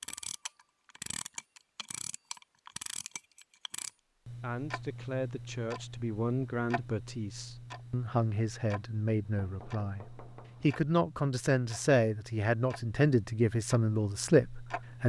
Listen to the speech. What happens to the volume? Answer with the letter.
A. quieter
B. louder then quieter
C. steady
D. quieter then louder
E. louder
E.